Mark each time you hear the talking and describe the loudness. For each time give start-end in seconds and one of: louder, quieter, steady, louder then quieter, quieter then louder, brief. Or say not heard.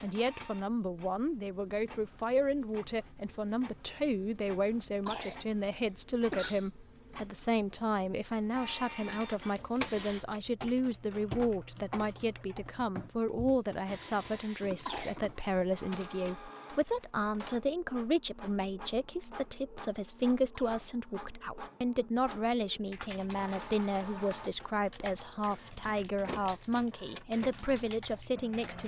0.0-28.8 steady.